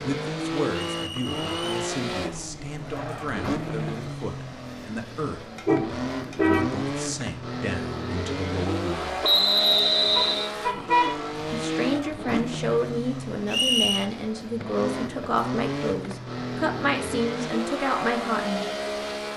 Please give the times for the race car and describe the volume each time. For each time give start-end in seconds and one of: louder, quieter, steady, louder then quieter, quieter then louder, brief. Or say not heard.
0.0-19.3 steady.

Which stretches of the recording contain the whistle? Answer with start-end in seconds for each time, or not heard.
0.9-1.7, 9.2-10.5, 13.5-14.1.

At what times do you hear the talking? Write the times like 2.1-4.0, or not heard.
0.0-9.2, 11.5-18.6.